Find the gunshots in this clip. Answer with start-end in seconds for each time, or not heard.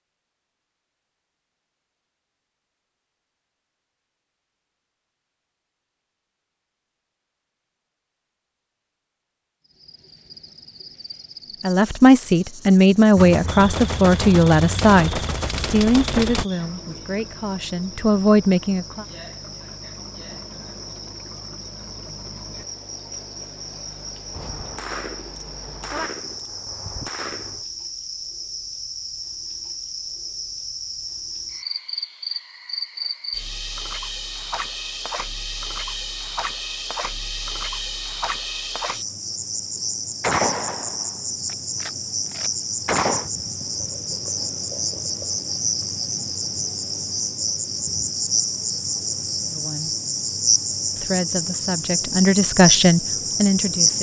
13.2-16.4, 24.4-27.6, 40.2-43.3.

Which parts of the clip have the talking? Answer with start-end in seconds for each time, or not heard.
11.6-19.1, 49.5-49.9, 51.0-53.9.